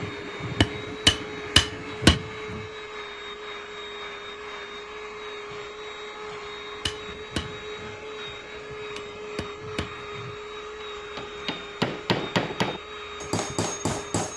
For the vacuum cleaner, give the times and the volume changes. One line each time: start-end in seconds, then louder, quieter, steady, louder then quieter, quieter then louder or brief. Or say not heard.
0.0-14.3 steady.